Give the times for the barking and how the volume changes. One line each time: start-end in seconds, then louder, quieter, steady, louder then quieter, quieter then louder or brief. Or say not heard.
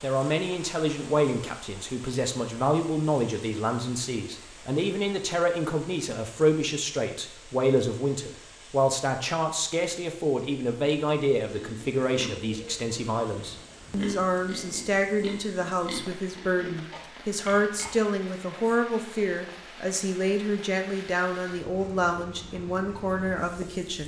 not heard.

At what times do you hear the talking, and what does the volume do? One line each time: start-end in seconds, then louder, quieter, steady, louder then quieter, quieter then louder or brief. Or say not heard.
0.0-24.0 steady.